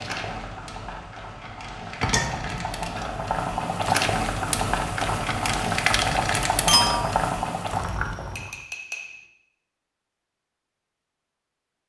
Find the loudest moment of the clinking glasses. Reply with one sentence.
The loudest moment of the clinking glasses is at 2 seconds.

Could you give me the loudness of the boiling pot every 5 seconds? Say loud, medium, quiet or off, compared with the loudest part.
loud, loud, off.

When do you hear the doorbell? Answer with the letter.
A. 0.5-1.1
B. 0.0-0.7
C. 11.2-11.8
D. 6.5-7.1
D.